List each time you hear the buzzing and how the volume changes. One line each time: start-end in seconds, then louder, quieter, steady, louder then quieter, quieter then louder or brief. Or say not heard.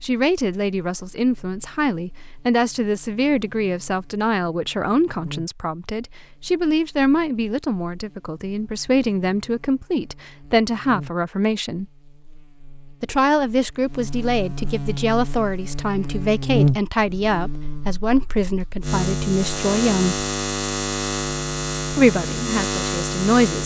0.0-23.6 louder.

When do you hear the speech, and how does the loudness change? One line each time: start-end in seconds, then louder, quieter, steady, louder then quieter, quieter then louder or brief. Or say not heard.
0.0-11.8 steady
13.0-20.2 steady
21.9-23.6 brief.